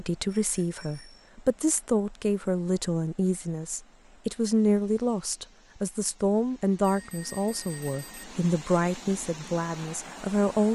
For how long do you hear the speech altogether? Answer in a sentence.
The speech can be heard for 11 seconds in total.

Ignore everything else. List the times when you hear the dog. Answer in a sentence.
The dog can't be heard in this clip.